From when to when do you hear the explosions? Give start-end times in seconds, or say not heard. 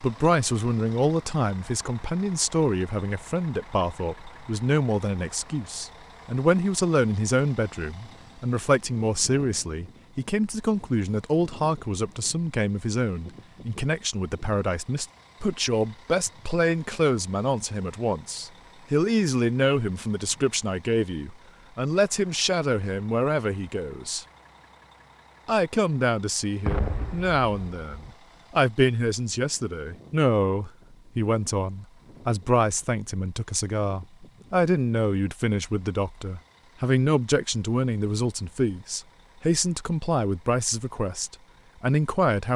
26.6-28.1.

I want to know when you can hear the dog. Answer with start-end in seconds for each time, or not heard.
not heard.